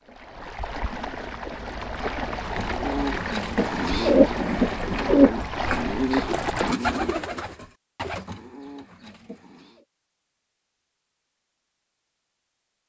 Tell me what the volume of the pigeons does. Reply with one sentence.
The loudness of the pigeons goes up, then down.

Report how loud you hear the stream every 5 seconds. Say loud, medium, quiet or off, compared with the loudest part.
loud, loud, off.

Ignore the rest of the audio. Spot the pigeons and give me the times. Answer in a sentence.
You can hear the pigeons from 2.5 to 9.8 s.